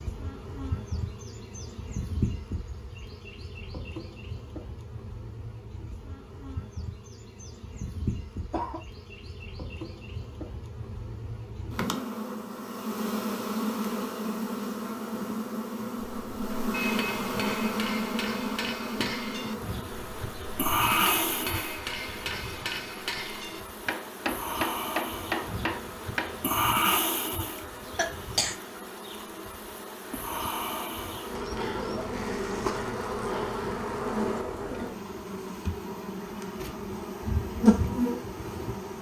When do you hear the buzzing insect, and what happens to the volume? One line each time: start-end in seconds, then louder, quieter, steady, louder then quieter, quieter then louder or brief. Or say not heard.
0.0-38.9 louder.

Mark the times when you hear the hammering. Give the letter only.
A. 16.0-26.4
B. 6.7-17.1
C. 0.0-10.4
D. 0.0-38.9
A.